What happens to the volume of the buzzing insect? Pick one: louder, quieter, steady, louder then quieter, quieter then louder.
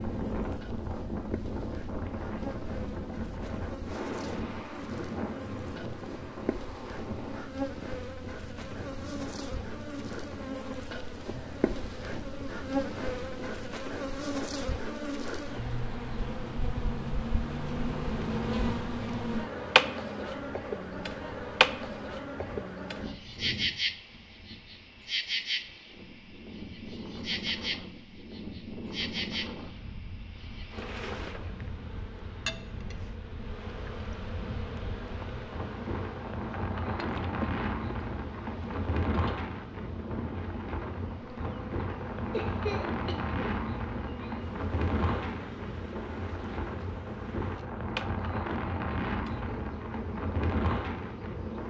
louder then quieter.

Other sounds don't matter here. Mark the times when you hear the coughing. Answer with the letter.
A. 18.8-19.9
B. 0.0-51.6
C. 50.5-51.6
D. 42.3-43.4
D.